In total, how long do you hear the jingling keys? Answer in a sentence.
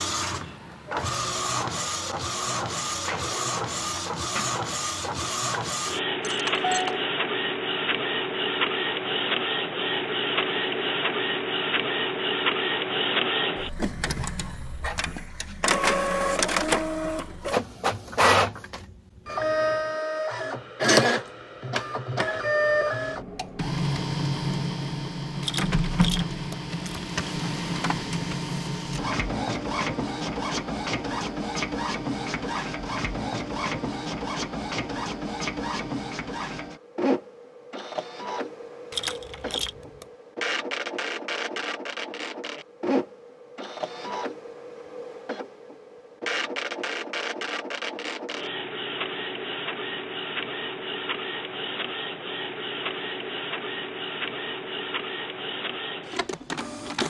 You can hear the jingling keys for 4 seconds altogether.